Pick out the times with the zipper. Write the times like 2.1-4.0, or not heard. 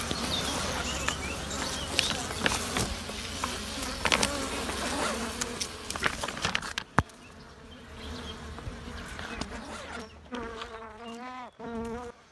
0.3-1.8, 4.5-5.2, 9.3-10.6.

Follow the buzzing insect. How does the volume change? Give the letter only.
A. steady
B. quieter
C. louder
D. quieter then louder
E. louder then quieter
B.